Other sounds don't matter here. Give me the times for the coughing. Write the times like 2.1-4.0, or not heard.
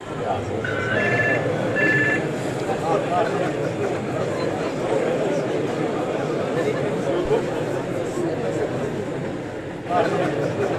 not heard.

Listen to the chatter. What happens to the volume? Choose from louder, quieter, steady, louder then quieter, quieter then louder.
steady.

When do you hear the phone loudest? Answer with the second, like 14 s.
2 s.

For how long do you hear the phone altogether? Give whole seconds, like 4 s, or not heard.
2 s.